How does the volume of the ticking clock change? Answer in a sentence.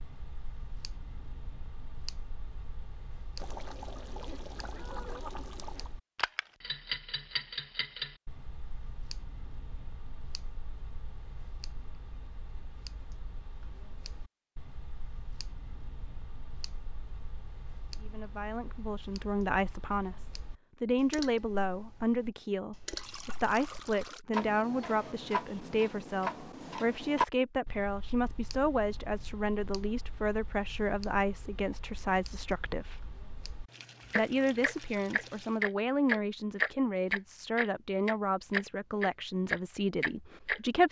The loudness of the ticking clock goes down, then up.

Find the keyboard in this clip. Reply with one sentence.
You can't hear the keyboard here.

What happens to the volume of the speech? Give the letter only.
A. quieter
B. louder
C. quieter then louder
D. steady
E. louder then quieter
D.